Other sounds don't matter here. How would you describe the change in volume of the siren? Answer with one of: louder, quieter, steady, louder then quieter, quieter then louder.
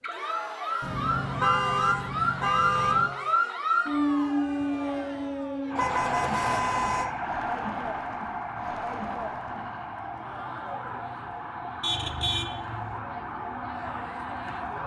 quieter.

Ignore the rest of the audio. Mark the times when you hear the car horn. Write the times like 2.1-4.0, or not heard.
0.8-3.1, 5.8-7.1, 11.8-13.0.